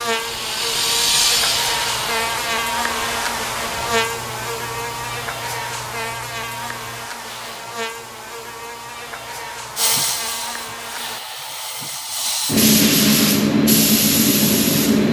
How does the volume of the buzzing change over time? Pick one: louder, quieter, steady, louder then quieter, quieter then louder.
quieter.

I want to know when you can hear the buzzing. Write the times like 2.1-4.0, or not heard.
0.0-11.2.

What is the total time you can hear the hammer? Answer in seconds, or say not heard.
not heard.